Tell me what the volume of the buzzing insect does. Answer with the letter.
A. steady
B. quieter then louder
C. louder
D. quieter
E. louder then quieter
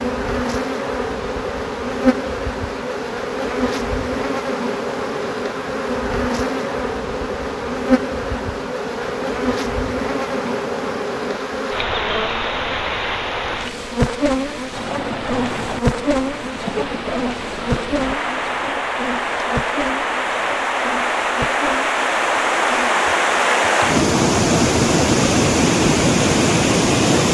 D.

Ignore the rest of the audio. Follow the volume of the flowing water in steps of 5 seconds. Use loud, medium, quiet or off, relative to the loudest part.
quiet, quiet, quiet, medium, loud, loud.